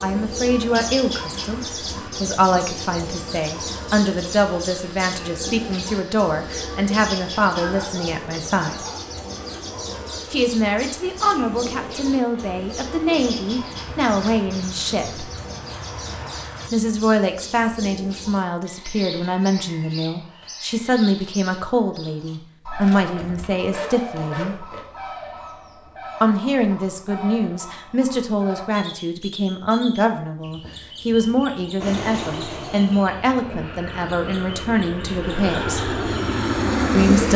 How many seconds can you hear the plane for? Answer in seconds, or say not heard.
22 s.